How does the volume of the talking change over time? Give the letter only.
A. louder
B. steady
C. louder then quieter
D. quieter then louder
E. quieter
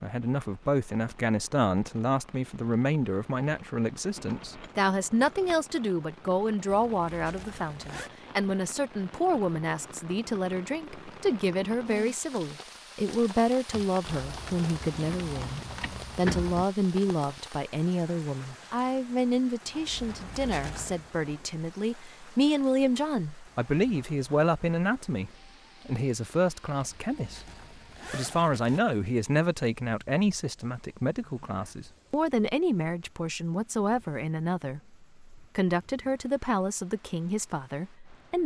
B.